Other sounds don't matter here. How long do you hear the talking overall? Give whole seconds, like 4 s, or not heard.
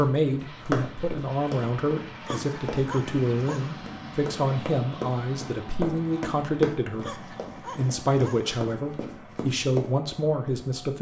10 s.